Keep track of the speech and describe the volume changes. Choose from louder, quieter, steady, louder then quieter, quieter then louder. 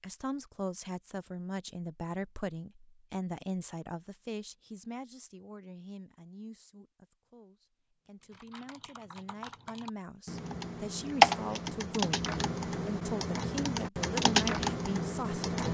quieter then louder.